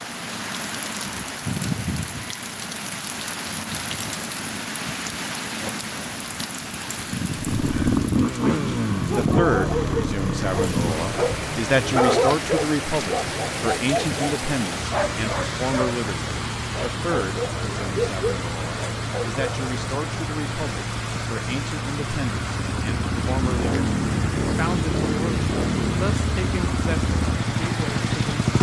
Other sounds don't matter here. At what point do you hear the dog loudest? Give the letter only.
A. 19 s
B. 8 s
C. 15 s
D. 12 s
D.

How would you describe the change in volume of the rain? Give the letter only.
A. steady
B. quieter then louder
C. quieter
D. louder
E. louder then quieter
A.